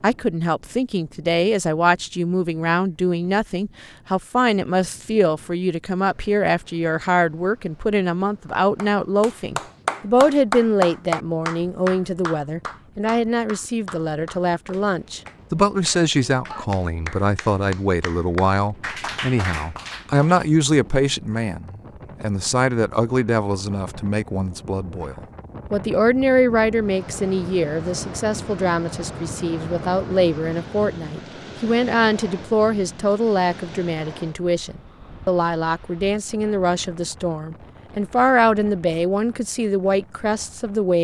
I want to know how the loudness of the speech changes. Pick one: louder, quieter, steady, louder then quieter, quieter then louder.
steady.